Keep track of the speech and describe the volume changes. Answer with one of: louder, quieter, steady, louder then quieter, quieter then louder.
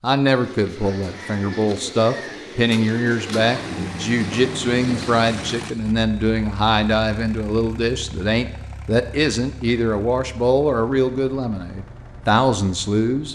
steady.